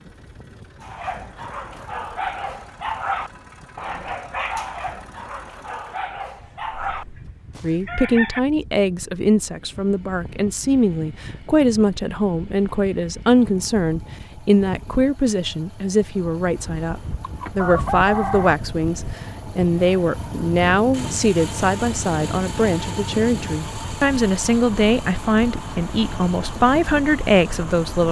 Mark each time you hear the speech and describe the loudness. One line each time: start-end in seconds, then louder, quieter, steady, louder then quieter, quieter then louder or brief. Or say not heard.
7.6-28.0 steady.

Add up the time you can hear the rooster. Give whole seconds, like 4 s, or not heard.
3 s.